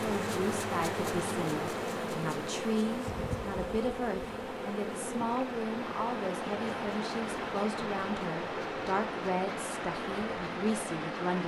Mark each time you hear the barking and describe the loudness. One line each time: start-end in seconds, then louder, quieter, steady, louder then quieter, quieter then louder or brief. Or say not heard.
not heard.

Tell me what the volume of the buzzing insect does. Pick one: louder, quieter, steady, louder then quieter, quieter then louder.
quieter.